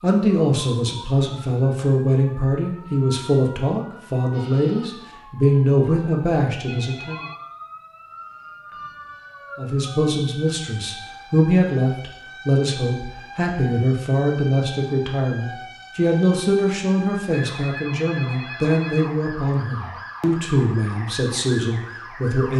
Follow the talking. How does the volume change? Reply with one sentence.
The loudness of the talking stays about the same.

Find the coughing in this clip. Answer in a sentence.
The coughing can't be heard in this clip.